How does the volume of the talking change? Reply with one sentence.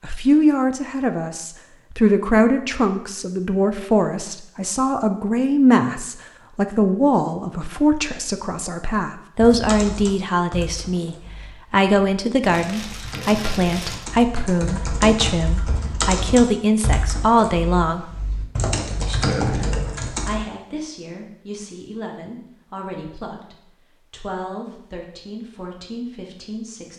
The loudness of the talking goes down.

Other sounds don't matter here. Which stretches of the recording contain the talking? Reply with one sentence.
You can hear the talking from 0.0 to 18.1 s and from 20.1 to 26.9 s.